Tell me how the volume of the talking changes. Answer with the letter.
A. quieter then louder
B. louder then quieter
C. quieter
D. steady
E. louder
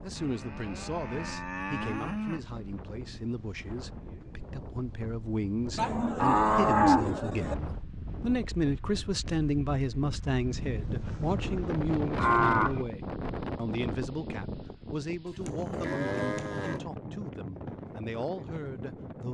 B.